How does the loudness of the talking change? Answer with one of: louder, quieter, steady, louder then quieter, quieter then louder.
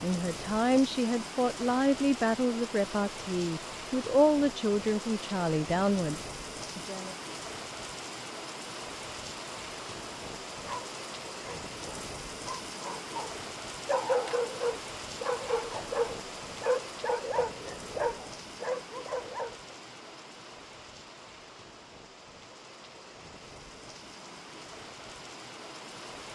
steady.